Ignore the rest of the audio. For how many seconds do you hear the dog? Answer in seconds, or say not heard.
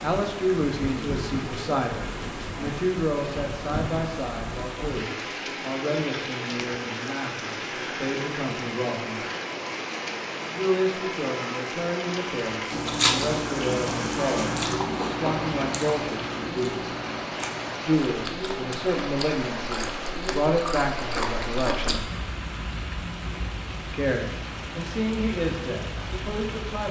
not heard.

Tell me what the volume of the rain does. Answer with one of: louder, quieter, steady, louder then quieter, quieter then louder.
steady.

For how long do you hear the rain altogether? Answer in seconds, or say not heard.
27 s.